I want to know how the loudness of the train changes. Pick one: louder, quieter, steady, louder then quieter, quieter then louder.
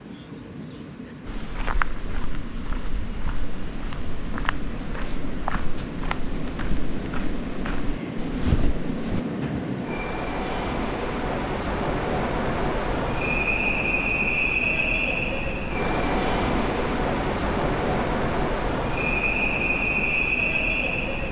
louder.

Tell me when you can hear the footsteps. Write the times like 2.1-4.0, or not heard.
1.2-9.2.